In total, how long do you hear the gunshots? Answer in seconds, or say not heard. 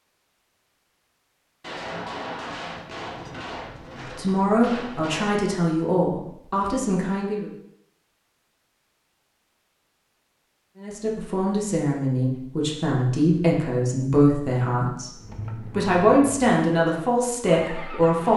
4 s.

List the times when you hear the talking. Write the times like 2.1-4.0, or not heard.
4.0-7.5, 10.8-18.3.